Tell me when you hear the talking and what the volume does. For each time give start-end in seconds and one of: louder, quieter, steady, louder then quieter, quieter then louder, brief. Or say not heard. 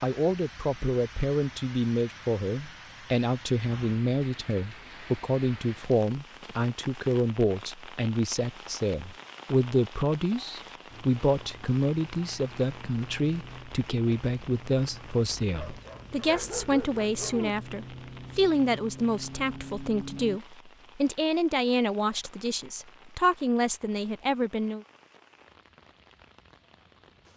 0.0-24.9 steady.